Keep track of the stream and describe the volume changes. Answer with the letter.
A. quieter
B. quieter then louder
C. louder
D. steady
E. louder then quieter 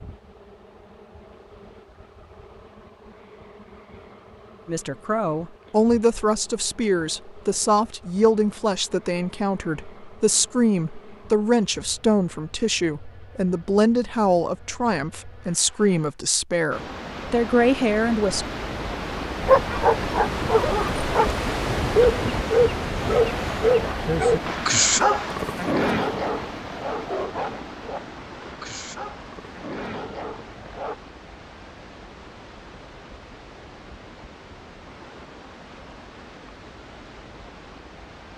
A.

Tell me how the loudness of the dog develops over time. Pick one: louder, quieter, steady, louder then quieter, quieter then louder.
quieter.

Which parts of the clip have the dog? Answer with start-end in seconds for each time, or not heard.
19.4-30.9.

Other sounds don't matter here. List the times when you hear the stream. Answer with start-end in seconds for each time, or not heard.
16.7-38.3.